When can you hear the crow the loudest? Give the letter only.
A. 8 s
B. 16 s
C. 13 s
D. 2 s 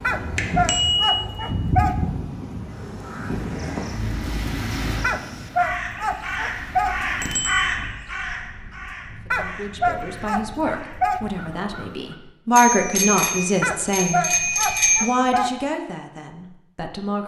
A.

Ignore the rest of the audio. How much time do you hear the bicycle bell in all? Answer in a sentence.
You can hear the bicycle bell for 4 seconds altogether.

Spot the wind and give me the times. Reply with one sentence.
The wind can be heard from 0.0 to 11.8 s.